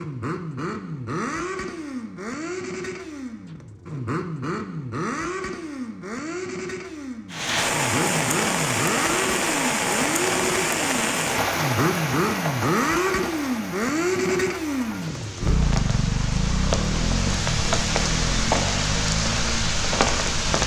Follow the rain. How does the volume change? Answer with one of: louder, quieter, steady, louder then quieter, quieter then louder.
quieter then louder.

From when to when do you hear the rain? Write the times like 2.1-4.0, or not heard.
7.3-20.6.